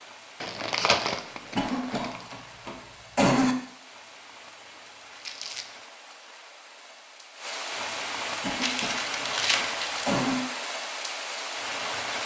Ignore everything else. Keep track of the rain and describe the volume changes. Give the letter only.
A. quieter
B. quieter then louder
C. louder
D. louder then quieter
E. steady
C.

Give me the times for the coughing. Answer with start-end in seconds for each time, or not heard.
1.6-3.5, 8.4-10.4.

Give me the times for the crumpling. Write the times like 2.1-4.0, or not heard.
0.4-2.4, 5.2-5.7, 8.6-10.1.